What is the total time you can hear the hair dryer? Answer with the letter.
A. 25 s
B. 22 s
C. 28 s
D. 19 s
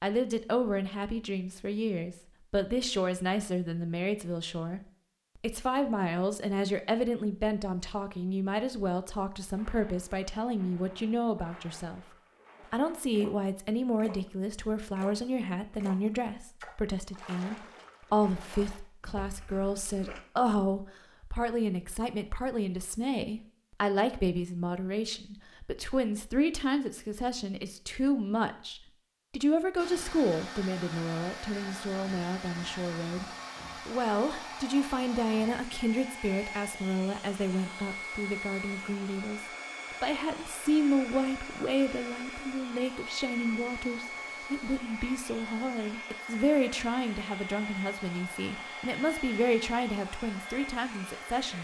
B.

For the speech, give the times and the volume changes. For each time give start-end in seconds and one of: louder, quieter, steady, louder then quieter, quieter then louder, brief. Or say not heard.
0.0-12.0 steady
12.7-33.2 steady
33.9-51.5 steady.